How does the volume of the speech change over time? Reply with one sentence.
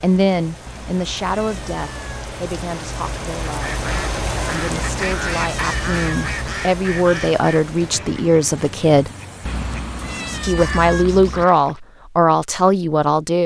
The volume of the speech goes down, then up.